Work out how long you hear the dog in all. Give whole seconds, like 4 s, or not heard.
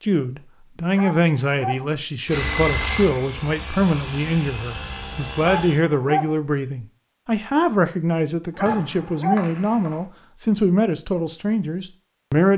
3 s.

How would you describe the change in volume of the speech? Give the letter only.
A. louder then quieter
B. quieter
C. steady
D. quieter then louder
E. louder
C.